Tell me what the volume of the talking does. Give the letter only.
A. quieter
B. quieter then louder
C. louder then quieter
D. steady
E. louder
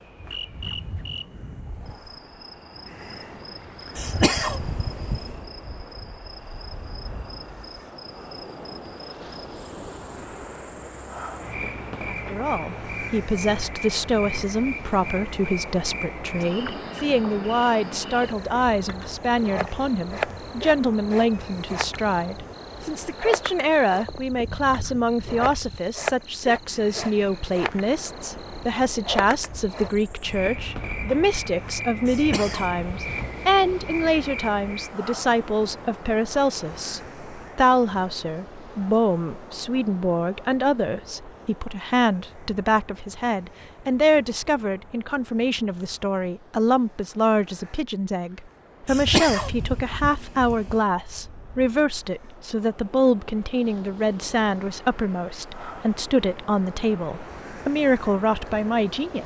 D.